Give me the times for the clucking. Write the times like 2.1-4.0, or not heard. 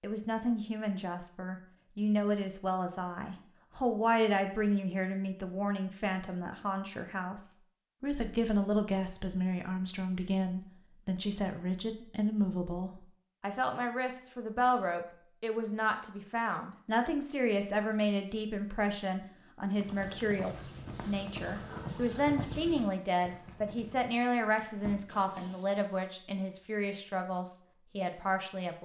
not heard.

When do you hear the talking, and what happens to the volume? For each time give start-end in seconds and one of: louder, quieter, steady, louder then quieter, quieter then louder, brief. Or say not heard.
0.0-28.8 steady.